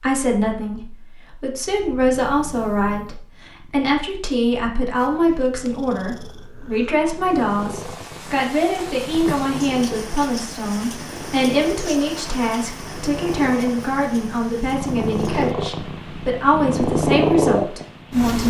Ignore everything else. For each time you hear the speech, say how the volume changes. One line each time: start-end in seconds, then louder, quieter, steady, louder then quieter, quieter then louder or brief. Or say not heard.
0.0-18.4 steady.